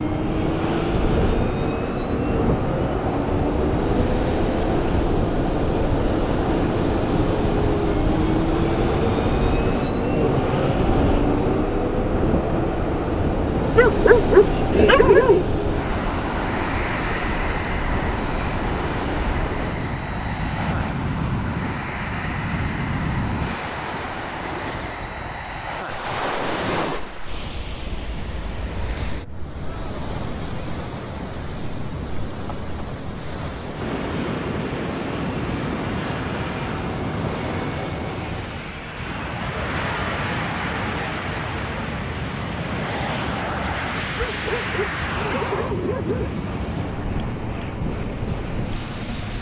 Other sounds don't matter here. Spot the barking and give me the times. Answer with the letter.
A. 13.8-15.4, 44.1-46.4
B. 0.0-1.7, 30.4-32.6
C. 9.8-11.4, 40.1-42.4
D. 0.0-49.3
A.